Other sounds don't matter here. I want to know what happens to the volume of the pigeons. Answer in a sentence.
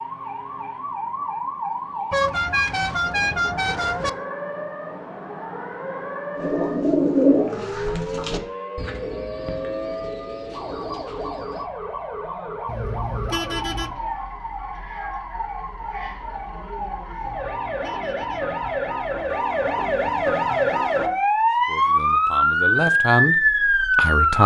The volume of the pigeons goes down.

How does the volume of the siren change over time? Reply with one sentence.
The volume of the siren goes up.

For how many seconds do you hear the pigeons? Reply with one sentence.
The pigeons can be heard for 5 seconds in total.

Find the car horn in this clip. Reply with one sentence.
The car horn can be heard from 2.1 to 4.1 s, from 12.7 to 13.9 s and from 17.2 to 19.2 s.